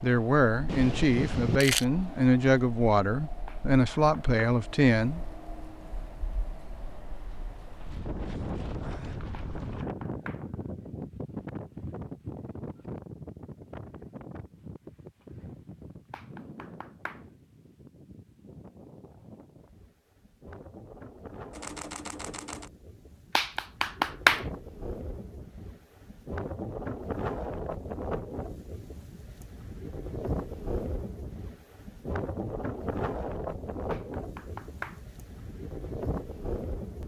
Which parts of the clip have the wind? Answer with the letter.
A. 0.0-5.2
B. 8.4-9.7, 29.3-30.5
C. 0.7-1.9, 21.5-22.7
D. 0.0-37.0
D.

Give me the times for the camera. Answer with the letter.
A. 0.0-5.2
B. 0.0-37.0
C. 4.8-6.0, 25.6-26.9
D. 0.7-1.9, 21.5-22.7
D.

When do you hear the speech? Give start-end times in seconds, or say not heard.
0.0-5.2.